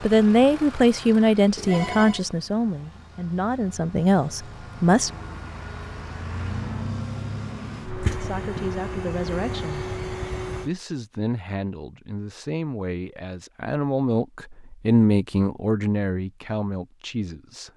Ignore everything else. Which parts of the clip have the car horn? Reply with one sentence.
You can't hear the car horn here.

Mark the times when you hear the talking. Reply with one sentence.
The talking can be heard from 0.0 to 5.1 s, from 8.2 to 9.8 s and from 10.4 to 17.7 s.